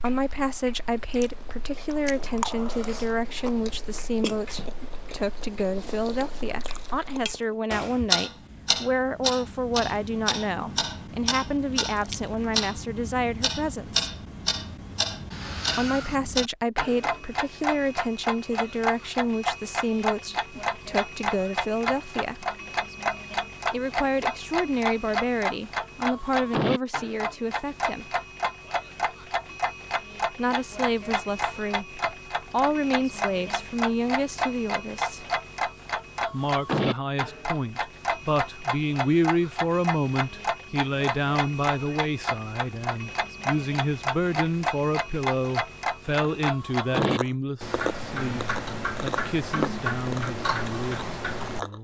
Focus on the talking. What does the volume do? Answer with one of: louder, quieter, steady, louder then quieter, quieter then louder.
steady.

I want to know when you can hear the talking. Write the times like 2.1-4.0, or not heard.
0.0-14.1, 15.8-22.4, 23.7-28.1, 30.4-35.2, 36.3-51.7.